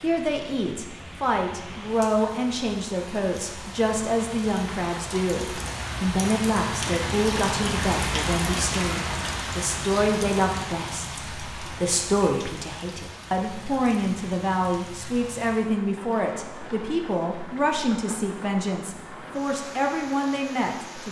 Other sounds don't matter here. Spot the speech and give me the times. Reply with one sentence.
You can hear the speech from 0.0 to 21.0 s.